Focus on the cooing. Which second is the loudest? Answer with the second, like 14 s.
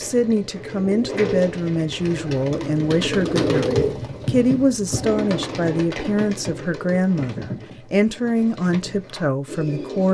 4 s.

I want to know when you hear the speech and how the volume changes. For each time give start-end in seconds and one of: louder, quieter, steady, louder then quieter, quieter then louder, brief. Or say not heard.
0.0-10.0 steady.